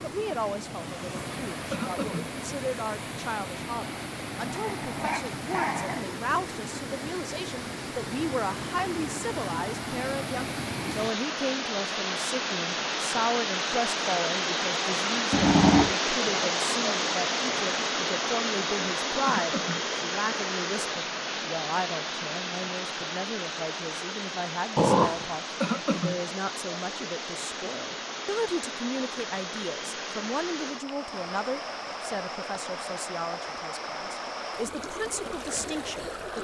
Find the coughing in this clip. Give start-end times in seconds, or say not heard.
1.7-2.3, 19.2-19.9, 25.6-26.2.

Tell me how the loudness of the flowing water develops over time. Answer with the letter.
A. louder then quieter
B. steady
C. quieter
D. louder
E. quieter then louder
A.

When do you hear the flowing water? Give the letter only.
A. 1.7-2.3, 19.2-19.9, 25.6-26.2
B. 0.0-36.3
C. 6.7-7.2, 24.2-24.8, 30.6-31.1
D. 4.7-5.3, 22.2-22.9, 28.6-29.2
B.